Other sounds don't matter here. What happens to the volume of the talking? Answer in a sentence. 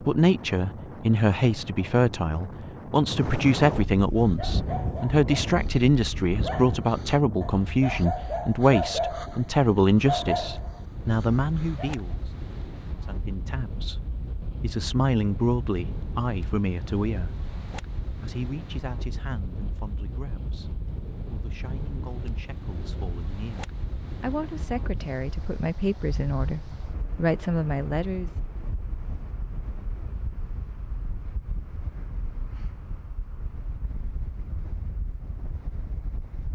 The loudness of the talking goes down, then up.